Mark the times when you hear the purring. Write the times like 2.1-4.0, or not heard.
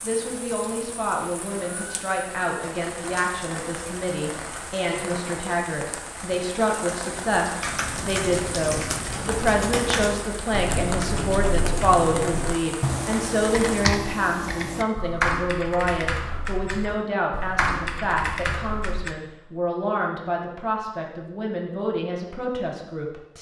not heard.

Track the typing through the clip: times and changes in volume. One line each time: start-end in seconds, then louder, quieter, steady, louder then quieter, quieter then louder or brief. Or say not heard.
7.6-19.1 steady.